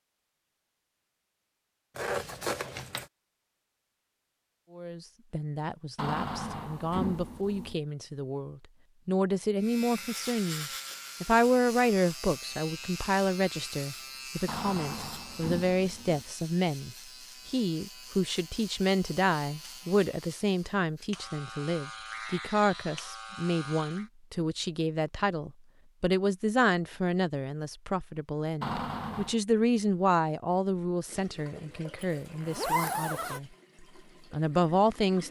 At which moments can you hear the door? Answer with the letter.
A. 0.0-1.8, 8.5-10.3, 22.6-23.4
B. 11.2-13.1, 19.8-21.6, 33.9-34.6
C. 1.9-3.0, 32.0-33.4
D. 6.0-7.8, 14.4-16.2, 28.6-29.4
D.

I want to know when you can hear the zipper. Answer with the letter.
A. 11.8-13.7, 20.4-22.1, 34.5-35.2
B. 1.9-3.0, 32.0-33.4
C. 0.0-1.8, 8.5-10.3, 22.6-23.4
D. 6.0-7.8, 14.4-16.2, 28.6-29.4
B.